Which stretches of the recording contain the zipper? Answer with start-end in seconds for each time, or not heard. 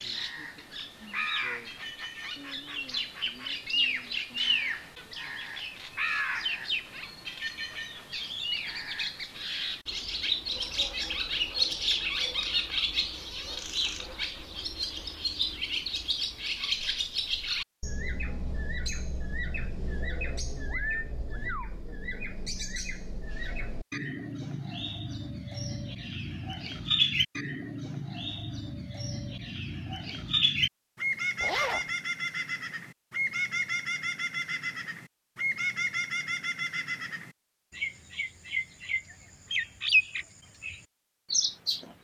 31.4-31.9.